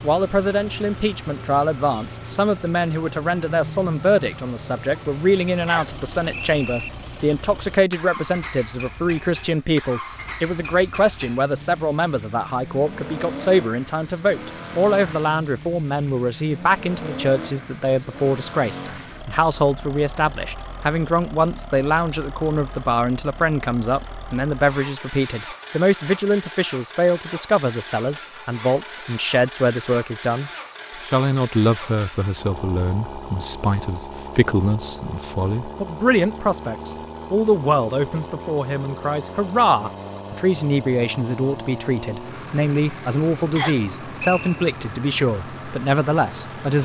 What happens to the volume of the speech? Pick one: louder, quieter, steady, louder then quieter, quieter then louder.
steady.